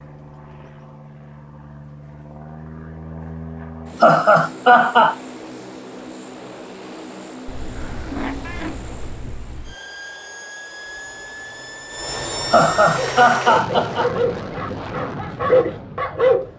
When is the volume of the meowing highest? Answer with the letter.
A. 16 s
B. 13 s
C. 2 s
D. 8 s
D.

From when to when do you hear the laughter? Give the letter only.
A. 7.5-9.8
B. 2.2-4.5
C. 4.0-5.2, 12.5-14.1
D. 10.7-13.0
C.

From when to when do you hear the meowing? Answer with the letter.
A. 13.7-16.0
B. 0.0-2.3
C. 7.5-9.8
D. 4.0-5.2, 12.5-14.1
C.